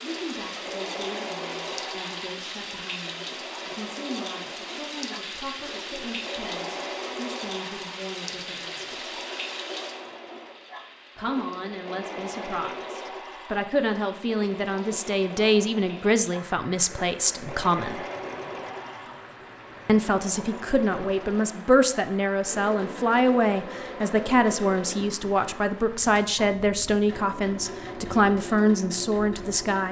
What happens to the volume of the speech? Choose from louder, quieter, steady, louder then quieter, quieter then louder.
louder.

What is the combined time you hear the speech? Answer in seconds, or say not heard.
26 s.